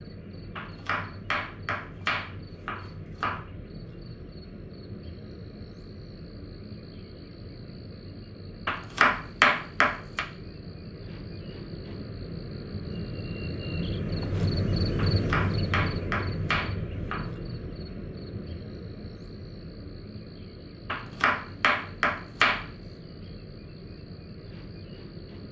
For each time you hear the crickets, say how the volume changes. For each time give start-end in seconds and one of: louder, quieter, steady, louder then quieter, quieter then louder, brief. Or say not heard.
0.0-25.4 louder then quieter.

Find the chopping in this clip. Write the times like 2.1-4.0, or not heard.
0.6-3.4, 8.7-10.2, 14.9-17.2, 20.9-22.6.